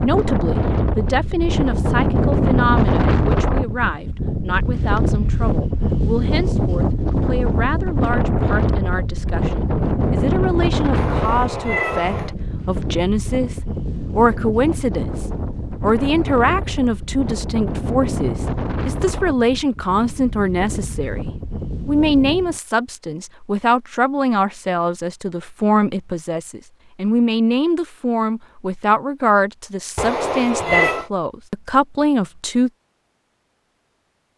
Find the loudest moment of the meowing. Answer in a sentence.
The volume of the meowing peaks at 31 seconds.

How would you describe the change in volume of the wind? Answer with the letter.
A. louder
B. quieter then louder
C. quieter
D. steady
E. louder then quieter
C.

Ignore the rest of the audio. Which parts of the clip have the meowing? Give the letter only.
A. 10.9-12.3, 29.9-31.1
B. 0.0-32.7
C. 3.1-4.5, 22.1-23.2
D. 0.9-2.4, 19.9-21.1
A.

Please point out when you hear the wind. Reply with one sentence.
You can hear the wind from 0.0 to 22.6 s.